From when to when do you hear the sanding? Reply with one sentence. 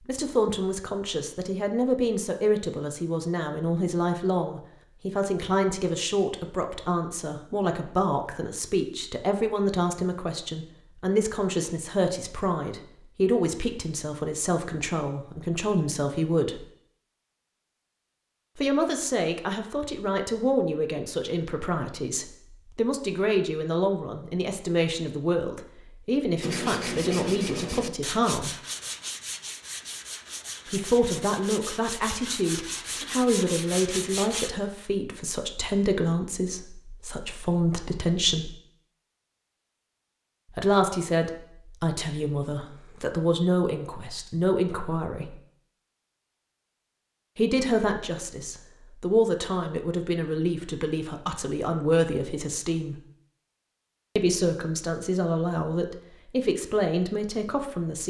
You can hear the sanding from 26.4 to 34.5 s.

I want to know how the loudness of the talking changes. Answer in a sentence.
The volume of the talking stays about the same.